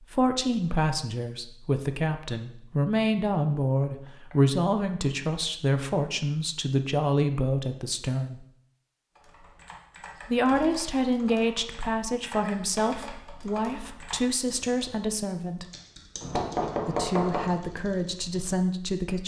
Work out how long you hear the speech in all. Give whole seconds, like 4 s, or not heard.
16 s.